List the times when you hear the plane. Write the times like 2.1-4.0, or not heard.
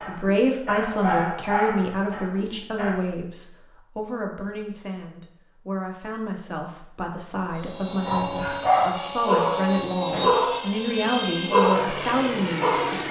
7.5-13.0.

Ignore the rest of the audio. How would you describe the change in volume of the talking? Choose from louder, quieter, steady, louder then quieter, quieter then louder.
quieter then louder.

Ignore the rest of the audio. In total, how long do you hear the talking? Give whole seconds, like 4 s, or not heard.
13 s.